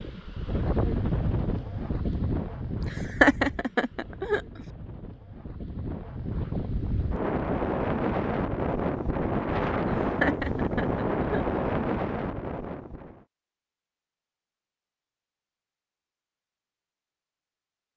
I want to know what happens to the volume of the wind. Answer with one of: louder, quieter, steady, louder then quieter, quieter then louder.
quieter then louder.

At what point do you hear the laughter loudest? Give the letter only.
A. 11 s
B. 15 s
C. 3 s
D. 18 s
C.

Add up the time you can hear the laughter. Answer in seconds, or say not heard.
3 s.